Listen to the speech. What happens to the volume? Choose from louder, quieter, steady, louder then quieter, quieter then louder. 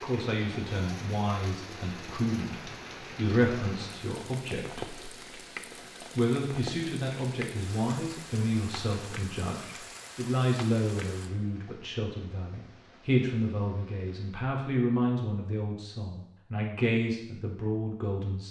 steady.